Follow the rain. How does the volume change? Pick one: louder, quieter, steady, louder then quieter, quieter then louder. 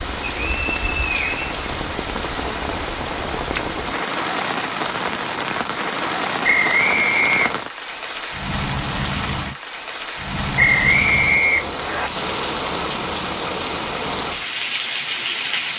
steady.